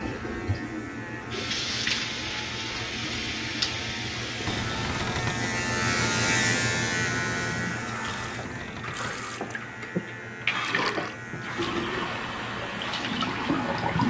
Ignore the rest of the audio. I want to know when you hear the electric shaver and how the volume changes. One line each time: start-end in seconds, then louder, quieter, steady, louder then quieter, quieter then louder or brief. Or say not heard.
0.0-14.0 louder then quieter.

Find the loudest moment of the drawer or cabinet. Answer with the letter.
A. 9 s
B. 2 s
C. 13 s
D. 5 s
D.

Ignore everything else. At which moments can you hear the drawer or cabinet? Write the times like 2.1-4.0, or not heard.
4.5-5.5, 8.1-9.2.